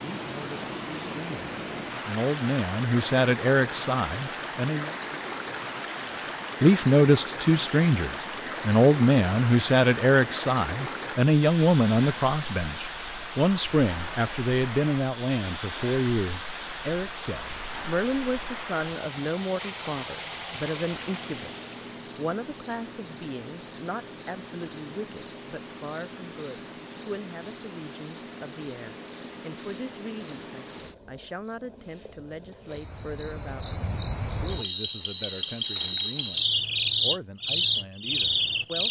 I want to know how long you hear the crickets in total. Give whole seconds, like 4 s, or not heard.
39 s.